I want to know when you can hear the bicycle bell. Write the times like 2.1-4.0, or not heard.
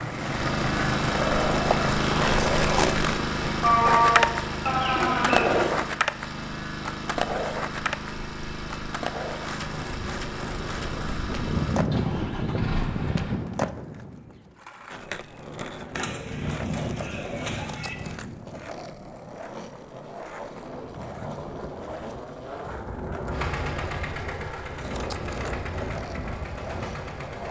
not heard.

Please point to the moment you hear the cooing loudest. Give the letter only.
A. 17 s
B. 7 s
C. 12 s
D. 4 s
D.